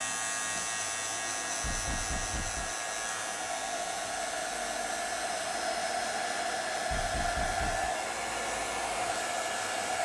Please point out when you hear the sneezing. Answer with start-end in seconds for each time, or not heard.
not heard.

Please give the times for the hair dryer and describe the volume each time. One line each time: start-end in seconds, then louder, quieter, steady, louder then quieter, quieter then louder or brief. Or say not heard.
0.0-9.9 louder.